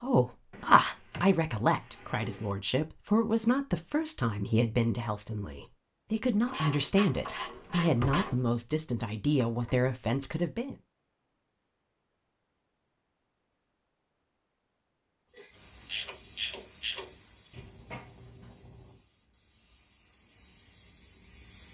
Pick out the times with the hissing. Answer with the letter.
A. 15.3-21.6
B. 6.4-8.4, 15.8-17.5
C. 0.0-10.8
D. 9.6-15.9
A.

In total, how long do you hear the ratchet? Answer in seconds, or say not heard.
4 s.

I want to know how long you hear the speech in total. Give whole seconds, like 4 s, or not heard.
11 s.